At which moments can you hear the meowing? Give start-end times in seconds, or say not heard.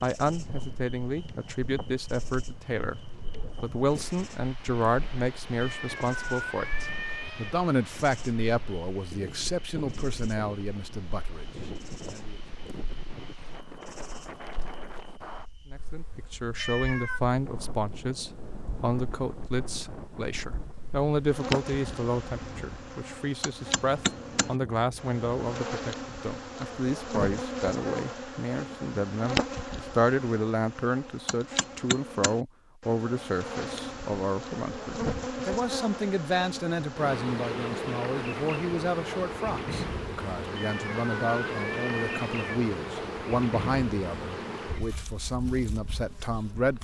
5.6-7.5, 16.6-17.2, 40.5-42.5.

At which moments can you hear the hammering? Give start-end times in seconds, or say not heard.
not heard.